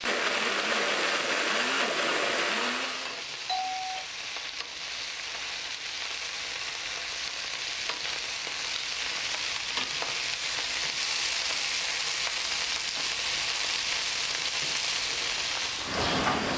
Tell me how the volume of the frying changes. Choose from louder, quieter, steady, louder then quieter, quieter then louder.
louder.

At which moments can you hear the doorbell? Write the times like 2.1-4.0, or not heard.
3.5-4.0.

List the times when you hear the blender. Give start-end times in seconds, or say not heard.
0.0-3.1.